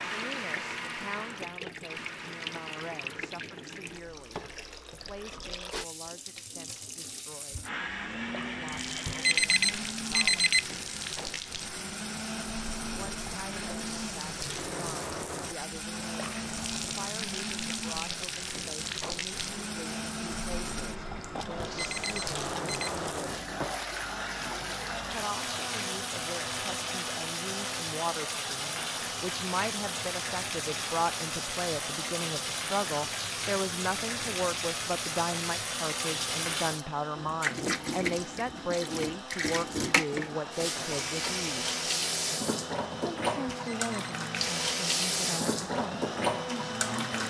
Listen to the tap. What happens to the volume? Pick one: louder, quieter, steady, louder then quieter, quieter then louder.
louder.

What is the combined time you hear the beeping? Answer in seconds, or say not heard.
3 s.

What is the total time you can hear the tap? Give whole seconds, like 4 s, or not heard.
47 s.